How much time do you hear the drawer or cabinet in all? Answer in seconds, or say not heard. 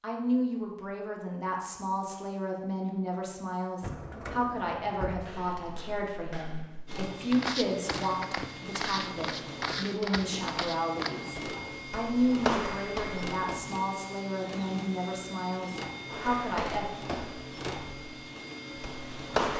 2 s.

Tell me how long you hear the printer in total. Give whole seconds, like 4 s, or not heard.
13 s.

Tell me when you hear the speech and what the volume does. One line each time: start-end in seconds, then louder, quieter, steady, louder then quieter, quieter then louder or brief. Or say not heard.
0.0-16.9 steady.